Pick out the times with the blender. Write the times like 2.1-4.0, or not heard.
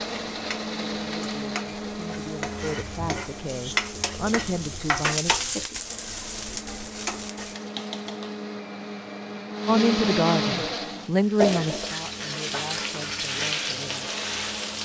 0.0-14.7.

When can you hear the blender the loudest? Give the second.
10 s.